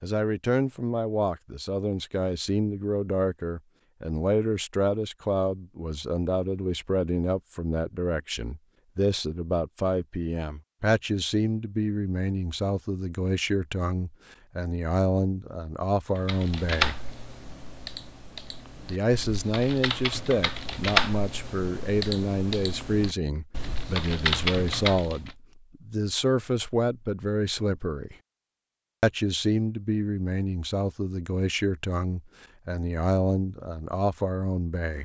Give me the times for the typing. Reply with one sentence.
You can hear the typing from 16.1 to 25.4 s.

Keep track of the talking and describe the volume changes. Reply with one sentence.
The loudness of the talking stays about the same.